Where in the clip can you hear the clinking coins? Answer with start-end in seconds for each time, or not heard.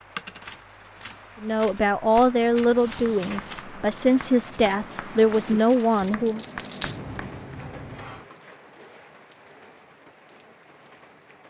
0.1-1.6, 6.0-7.0.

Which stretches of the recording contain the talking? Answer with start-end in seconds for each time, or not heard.
1.4-6.5.